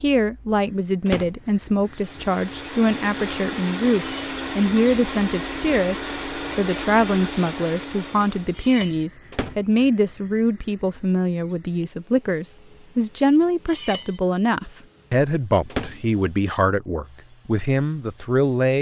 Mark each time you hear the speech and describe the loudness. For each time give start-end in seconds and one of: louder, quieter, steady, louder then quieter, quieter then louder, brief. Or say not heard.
0.0-18.7 steady.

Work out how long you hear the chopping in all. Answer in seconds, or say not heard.
not heard.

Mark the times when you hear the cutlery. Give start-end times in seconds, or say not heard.
3.9-4.4, 8.6-9.1, 13.7-14.2.